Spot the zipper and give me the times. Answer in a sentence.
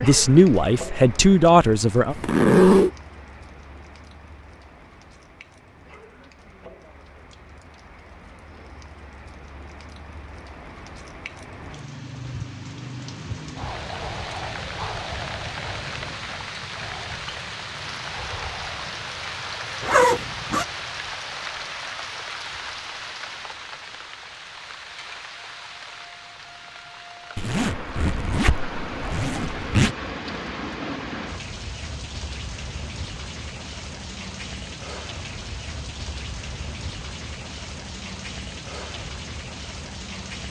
You can hear the zipper from 2.1 to 2.9 s, from 19.8 to 20.6 s and from 27.4 to 29.9 s.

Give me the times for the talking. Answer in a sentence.
You can hear the talking from 0.0 to 2.1 s.